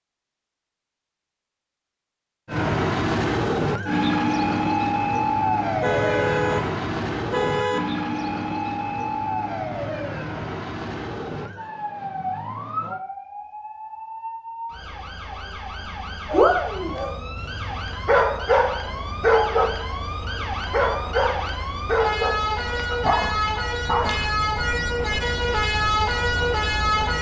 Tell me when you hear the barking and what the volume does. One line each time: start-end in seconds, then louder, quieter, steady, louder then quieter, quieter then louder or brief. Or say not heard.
16.3-24.3 louder then quieter.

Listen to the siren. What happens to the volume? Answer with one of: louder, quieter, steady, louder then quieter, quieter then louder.
quieter then louder.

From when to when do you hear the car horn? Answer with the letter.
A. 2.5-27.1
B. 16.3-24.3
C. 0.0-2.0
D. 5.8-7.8
D.